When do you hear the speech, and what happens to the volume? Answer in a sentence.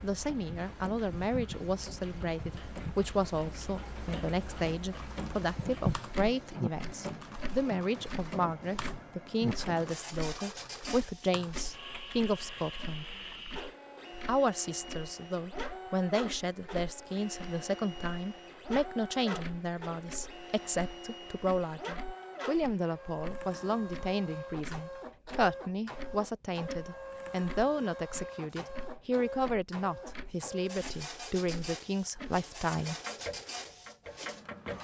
You can hear the speech from 0.0 to 13.2 s, at a steady volume; and from 14.2 to 33.0 s, at a steady volume.